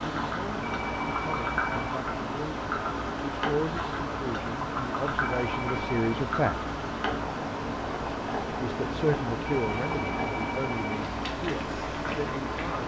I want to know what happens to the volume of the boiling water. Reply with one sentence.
The loudness of the boiling water stays about the same.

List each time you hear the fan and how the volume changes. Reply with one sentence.
The fan can be heard from 0.0 to 12.8 s, at a steady volume.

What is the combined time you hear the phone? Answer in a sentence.
You can hear the phone for 4 seconds altogether.